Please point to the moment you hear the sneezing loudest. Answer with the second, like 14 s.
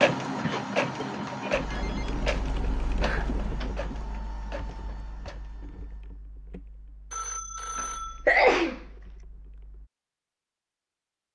8 s.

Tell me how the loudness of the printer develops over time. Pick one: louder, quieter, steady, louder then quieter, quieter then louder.
quieter.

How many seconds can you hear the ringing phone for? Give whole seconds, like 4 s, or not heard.
3 s.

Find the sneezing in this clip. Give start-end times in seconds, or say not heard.
0.4-1.9, 7.8-8.8.